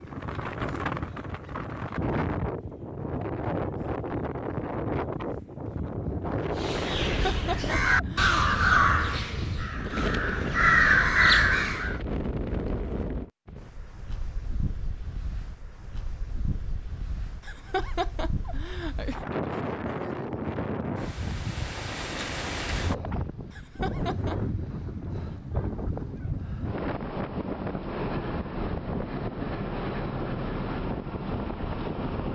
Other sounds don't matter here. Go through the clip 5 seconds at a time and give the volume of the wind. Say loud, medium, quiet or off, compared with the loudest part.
loud, loud, loud, medium, loud, loud, loud.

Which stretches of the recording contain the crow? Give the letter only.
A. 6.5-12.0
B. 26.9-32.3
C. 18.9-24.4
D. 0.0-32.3
A.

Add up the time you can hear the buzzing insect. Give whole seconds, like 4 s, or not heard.
not heard.